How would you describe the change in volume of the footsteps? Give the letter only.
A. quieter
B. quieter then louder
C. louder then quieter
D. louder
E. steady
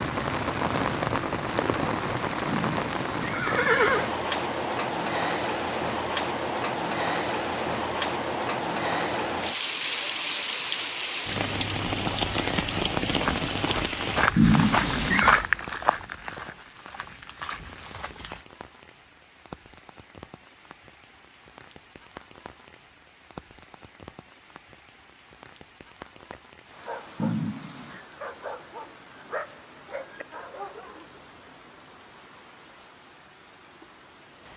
A.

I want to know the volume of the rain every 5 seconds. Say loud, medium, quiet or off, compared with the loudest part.
loud, loud, loud, quiet, quiet, quiet, quiet.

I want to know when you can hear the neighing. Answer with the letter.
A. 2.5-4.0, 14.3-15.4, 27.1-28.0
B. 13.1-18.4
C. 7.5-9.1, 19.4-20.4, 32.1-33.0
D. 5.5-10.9
A.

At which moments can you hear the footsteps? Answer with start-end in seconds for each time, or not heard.
13.1-18.4.